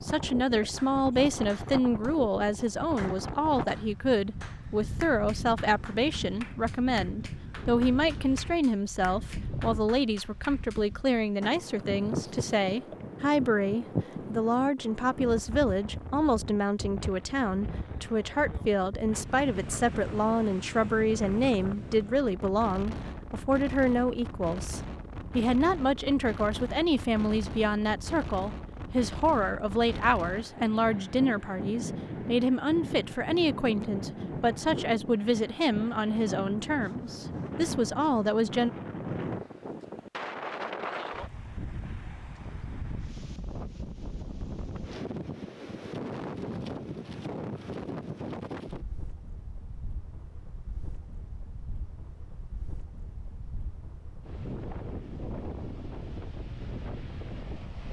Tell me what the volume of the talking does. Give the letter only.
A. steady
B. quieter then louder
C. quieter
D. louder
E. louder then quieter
A.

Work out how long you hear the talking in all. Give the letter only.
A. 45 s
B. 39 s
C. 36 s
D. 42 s
B.